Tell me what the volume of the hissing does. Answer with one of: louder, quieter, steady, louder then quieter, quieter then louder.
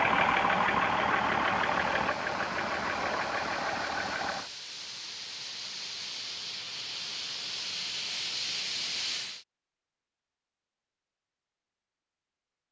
louder.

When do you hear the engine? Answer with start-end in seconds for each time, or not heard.
0.0-4.5.